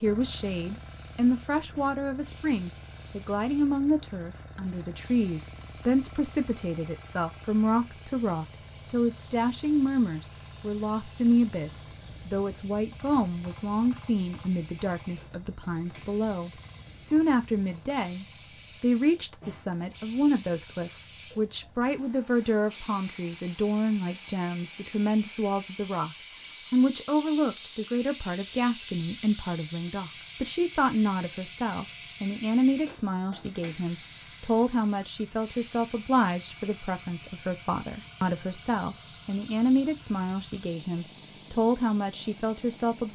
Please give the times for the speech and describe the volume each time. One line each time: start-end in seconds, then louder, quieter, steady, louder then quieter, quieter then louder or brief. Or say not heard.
0.0-43.1 steady.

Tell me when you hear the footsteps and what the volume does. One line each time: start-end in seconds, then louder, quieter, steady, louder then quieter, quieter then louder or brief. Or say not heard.
not heard.